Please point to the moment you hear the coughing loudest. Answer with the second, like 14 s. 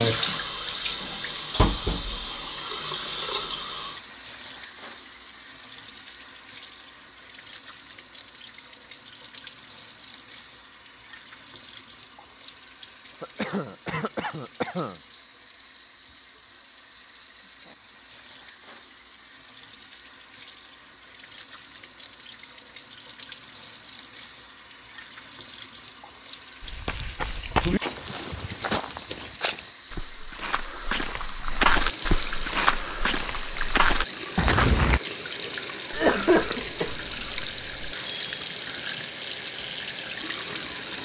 36 s.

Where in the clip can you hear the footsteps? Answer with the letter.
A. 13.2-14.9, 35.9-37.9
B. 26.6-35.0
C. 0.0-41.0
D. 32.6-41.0
B.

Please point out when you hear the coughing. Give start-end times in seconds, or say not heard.
13.2-14.9, 35.9-37.9.